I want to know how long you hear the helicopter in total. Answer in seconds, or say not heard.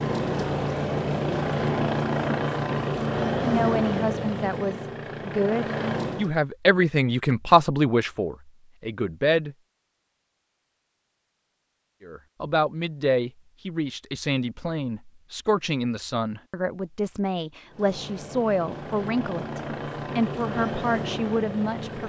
11 s.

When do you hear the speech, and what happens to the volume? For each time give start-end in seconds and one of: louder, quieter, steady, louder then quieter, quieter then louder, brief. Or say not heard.
3.4-9.6 louder then quieter
12.0-22.0 steady.